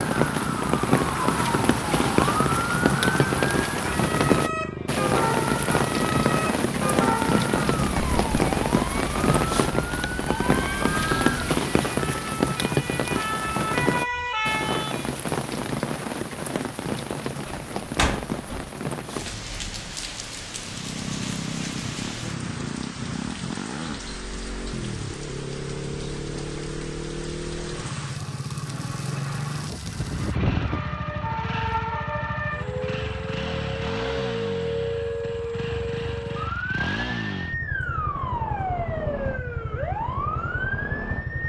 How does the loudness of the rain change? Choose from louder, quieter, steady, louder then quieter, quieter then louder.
quieter.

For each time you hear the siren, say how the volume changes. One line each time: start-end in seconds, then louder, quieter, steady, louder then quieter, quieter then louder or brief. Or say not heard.
0.0-15.1 steady
29.6-41.4 steady.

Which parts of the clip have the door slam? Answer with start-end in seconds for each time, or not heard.
17.4-18.7.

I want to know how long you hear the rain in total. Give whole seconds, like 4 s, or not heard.
30 s.